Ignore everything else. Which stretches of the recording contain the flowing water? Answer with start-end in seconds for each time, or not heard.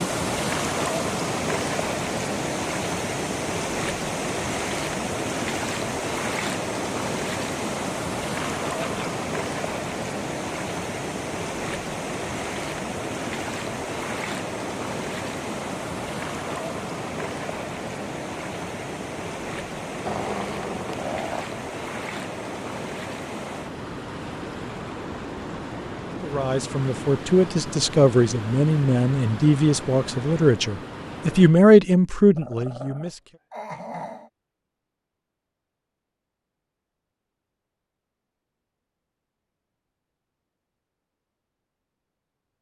0.0-31.6.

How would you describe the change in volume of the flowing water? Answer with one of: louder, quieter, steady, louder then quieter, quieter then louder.
quieter.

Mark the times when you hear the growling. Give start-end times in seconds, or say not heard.
8.7-9.1, 20.1-21.5, 32.4-34.3.